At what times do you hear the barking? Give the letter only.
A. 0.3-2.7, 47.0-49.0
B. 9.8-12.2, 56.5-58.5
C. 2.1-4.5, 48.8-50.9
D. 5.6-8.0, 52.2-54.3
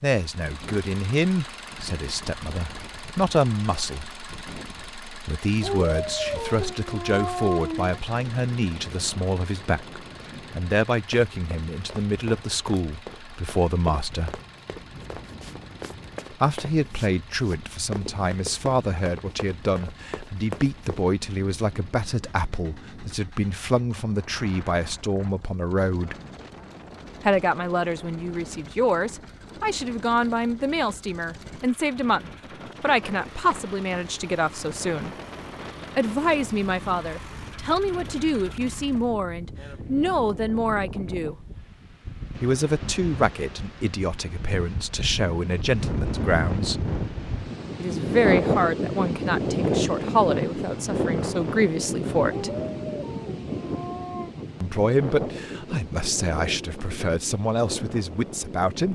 D.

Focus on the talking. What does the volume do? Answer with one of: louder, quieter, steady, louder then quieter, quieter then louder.
steady.